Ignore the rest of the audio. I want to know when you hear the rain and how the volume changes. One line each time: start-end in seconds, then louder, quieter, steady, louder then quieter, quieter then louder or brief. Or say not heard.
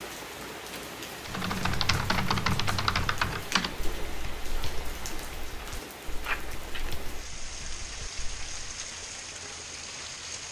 0.0-10.4 steady.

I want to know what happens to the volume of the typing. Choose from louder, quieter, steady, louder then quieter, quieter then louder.
quieter.